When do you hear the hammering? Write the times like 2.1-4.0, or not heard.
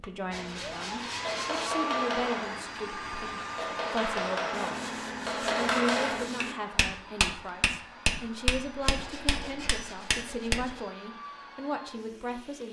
0.2-10.6.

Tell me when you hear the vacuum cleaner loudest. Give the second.
2 s.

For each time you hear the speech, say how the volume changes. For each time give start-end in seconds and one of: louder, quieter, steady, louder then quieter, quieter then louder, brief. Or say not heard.
0.0-12.6 steady.